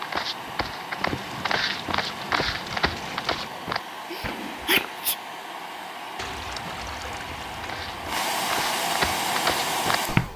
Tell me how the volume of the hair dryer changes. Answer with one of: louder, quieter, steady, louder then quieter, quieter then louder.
louder.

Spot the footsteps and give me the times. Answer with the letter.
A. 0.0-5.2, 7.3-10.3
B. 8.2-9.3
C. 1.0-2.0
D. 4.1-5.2
A.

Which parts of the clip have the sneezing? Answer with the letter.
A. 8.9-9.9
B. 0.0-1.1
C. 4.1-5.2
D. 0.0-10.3
C.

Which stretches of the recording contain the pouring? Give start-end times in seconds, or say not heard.
1.1-3.5, 6.2-8.2.